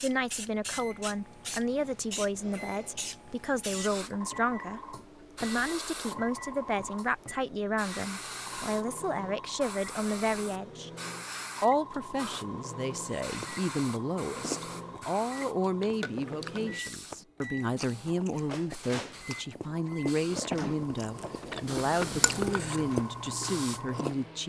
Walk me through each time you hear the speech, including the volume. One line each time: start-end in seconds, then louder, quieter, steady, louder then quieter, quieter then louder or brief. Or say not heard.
0.0-10.9 steady
11.6-24.4 steady.